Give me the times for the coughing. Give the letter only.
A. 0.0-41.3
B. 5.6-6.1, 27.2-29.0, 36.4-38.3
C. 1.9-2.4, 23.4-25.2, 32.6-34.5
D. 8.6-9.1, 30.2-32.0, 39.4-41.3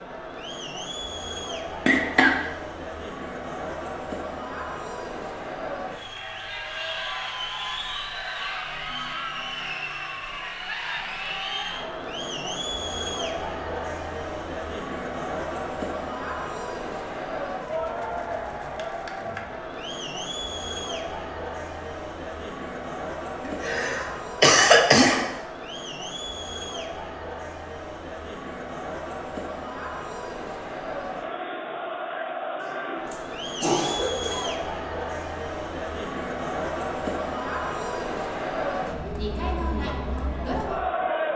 C.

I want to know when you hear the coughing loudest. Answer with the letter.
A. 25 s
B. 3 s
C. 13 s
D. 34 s
A.